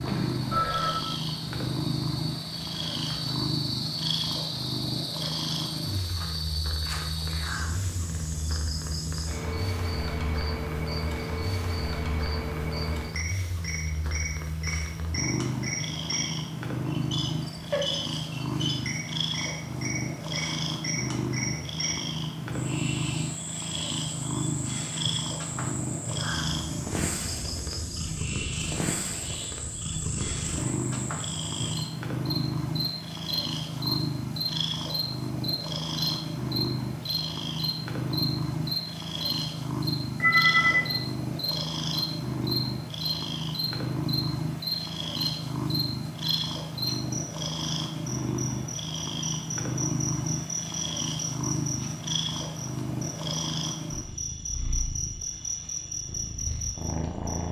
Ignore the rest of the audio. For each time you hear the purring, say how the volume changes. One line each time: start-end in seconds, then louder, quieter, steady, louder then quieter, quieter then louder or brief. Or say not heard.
0.0-57.4 steady.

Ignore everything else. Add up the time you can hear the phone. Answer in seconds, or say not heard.
2 s.